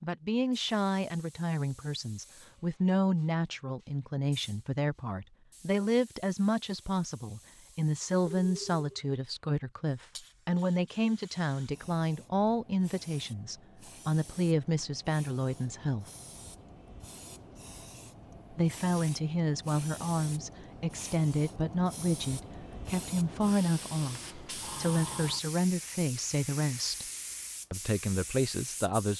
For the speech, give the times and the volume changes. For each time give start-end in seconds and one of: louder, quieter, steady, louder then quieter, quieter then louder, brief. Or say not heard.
0.0-16.1 steady
18.5-27.1 steady
27.7-29.1 brief.